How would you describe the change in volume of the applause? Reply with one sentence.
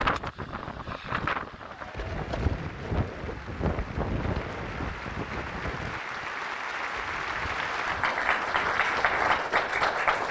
The volume of the applause goes up.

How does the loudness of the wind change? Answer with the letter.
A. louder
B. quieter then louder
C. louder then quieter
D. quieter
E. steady
D.